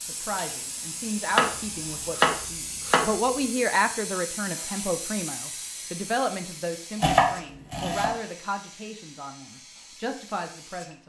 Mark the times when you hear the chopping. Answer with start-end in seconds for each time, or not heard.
1.3-3.0, 7.0-8.2.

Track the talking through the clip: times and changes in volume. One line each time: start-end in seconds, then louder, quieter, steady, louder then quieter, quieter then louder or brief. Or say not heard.
0.0-11.0 louder then quieter.